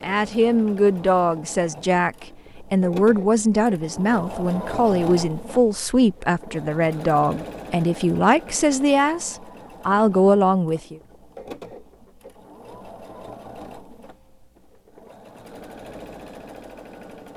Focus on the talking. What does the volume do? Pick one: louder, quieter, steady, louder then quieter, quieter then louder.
steady.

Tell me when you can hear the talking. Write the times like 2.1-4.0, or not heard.
0.0-11.0.